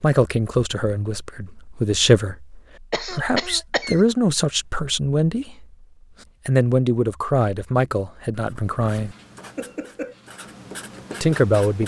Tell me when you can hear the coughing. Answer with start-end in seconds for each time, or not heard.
2.9-4.0, 9.6-10.2.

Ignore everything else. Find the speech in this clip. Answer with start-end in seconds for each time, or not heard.
0.0-5.7, 6.5-9.2, 11.2-11.8.